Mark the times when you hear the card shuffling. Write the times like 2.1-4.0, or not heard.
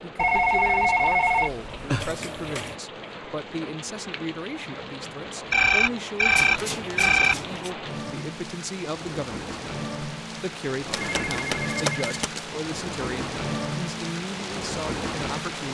2.0-2.8, 6.3-7.8, 10.9-12.4.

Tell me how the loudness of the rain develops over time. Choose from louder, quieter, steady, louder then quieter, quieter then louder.
louder.